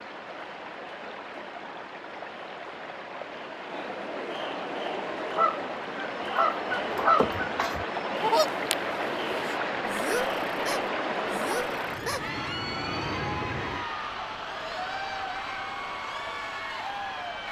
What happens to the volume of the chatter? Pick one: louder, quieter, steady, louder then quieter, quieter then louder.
louder.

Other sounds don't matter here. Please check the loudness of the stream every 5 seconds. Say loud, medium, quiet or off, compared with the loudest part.
medium, loud, loud, medium.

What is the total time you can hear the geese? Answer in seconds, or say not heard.
7 s.